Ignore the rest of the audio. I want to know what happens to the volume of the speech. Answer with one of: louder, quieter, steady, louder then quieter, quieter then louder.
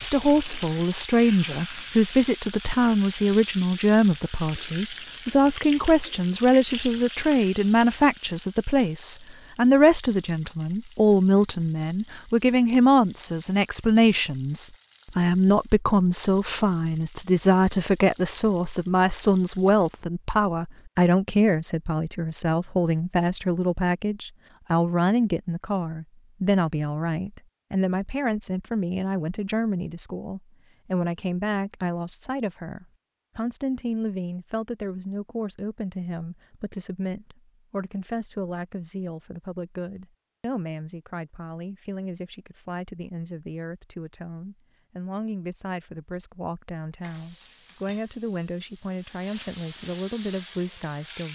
quieter.